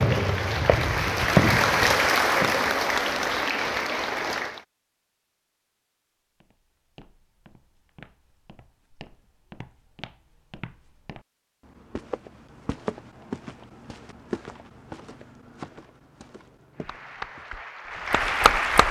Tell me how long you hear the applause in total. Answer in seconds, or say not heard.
7 s.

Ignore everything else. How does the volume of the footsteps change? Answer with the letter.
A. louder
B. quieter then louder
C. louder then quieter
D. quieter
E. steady
C.